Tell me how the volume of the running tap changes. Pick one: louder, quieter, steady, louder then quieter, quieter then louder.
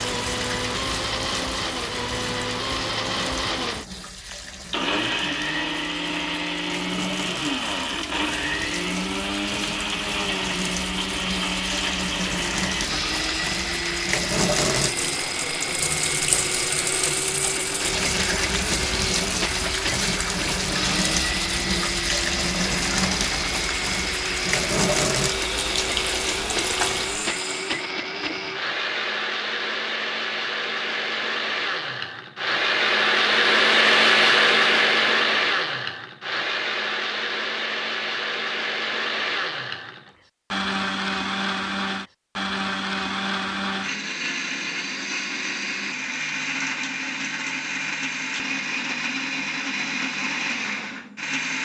louder.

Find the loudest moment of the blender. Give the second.
34 s.